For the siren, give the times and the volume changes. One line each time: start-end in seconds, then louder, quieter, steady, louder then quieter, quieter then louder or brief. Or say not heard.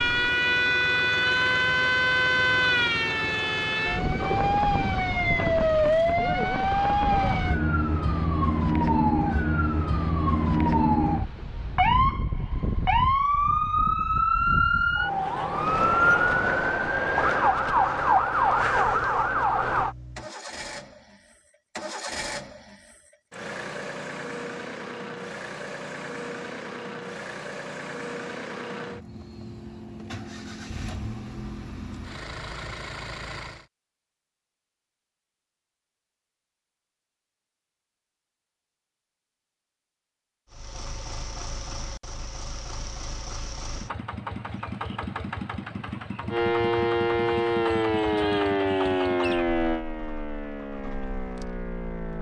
0.0-19.9 steady
46.3-52.1 quieter.